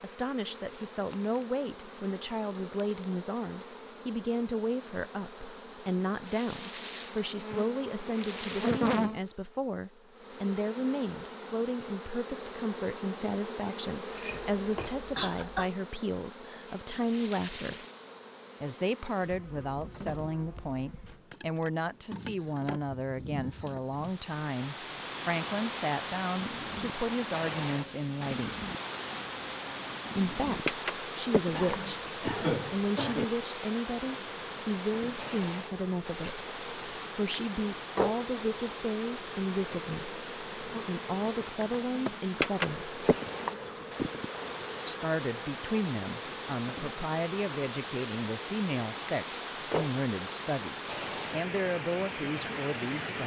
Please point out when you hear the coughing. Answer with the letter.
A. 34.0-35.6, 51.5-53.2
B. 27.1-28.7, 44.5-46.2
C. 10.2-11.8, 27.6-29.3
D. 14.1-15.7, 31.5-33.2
D.